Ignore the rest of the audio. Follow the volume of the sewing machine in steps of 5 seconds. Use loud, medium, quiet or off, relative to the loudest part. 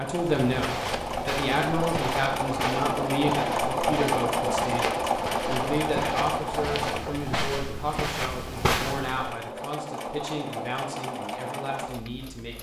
loud, loud, medium.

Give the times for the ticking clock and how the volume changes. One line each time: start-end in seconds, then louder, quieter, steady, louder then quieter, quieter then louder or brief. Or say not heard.
not heard.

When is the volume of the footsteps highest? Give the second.
9 s.